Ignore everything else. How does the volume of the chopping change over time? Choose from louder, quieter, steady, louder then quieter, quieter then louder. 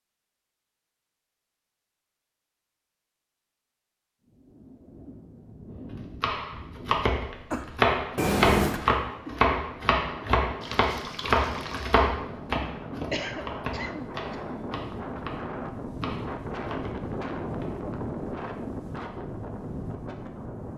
quieter.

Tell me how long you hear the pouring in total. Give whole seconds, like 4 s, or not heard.
2 s.